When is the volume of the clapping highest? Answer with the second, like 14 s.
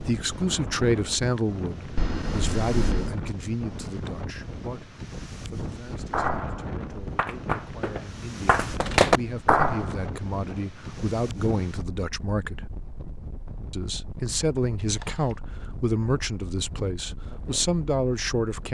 9 s.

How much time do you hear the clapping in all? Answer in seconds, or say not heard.
4 s.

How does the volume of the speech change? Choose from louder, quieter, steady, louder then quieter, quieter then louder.
quieter then louder.